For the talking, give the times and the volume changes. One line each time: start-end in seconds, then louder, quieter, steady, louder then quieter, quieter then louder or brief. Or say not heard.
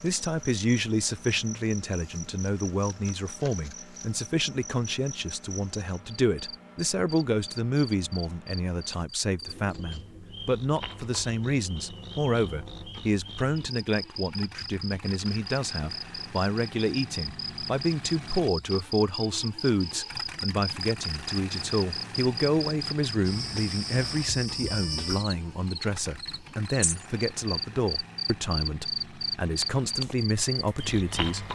0.0-31.5 steady.